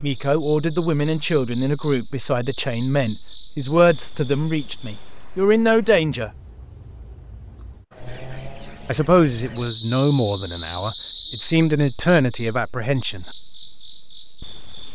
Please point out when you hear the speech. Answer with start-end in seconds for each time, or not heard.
0.0-6.3, 8.8-13.2.